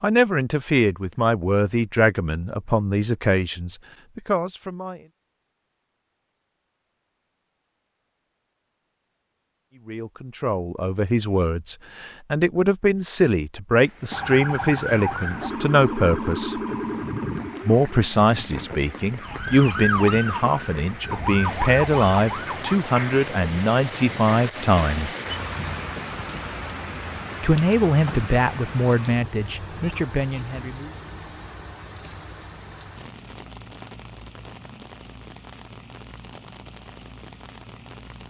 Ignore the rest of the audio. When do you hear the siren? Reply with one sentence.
You can hear the siren from 14.1 to 22.8 s.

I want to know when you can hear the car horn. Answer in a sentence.
You can't hear the car horn here.